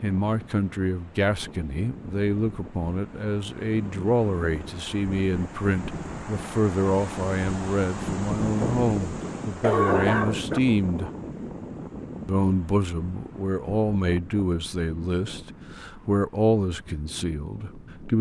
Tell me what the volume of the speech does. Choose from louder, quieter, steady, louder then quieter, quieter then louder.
steady.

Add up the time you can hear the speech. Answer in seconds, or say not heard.
17 s.